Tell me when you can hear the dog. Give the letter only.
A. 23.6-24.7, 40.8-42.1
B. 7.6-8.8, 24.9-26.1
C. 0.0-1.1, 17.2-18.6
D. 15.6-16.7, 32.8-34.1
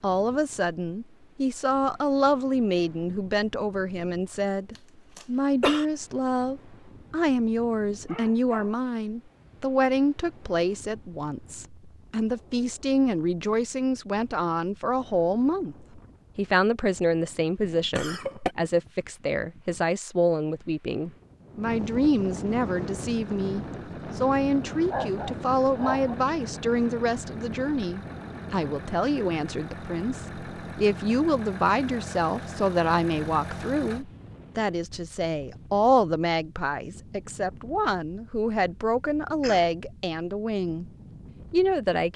B.